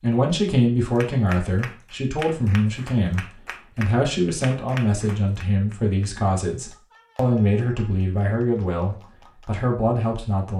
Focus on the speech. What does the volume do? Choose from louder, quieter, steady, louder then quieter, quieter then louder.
steady.